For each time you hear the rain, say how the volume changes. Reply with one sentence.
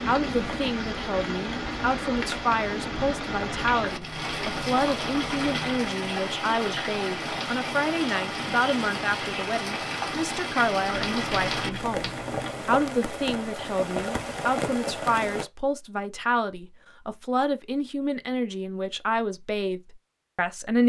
You can hear the rain from 0.0 to 15.4 s, at a steady volume.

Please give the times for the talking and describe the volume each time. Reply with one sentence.
You can hear the talking from 0.0 to 20.8 s, at a steady volume.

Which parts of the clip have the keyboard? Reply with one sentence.
You can hear the keyboard from 3.5 to 5.8 s and from 10.9 to 12.6 s.